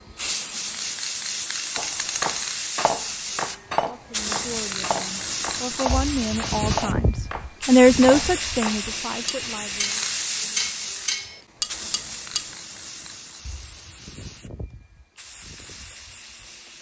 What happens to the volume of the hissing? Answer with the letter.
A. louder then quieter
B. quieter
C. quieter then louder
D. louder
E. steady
B.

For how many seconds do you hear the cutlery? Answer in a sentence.
The cutlery can be heard for 11 seconds in total.